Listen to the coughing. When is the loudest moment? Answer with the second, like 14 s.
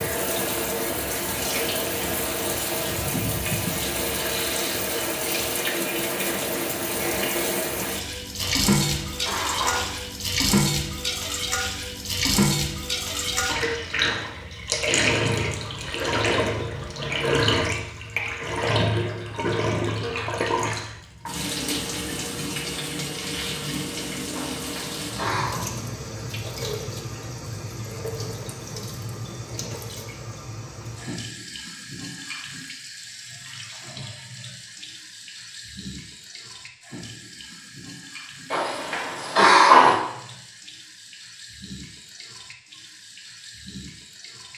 40 s.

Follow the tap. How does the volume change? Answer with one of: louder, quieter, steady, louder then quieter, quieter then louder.
quieter.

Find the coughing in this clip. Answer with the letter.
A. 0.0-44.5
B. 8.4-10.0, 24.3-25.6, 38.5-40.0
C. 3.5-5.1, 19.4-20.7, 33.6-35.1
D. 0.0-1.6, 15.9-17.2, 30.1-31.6
B.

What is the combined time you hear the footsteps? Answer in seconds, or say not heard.
not heard.